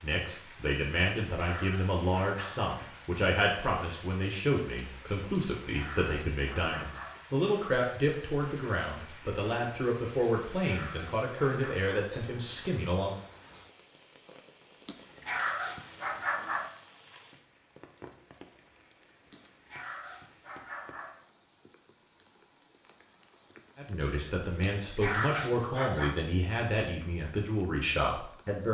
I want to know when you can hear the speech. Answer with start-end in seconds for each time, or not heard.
0.0-13.2, 23.8-28.7.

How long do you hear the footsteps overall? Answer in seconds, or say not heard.
not heard.